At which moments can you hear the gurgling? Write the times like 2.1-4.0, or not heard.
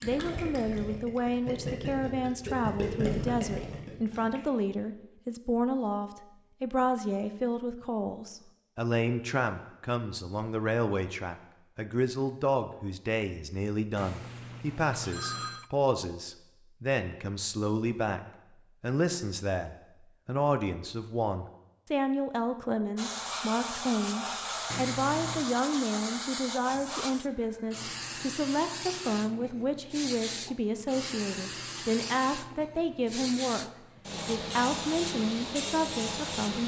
0.0-4.4.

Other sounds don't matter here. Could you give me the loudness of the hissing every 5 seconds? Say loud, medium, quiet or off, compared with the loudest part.
off, off, off, off, loud, loud, loud, loud.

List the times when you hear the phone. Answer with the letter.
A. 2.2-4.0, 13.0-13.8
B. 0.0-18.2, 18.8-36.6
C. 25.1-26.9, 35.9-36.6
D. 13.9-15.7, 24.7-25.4
D.